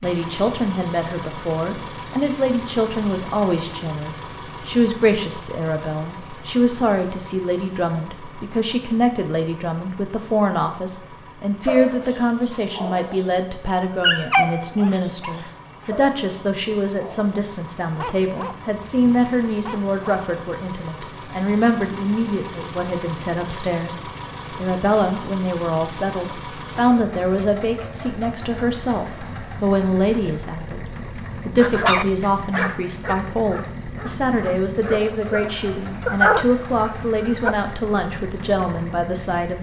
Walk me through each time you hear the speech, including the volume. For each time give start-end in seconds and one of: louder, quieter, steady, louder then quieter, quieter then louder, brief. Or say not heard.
0.0-30.9 steady
31.4-39.5 steady.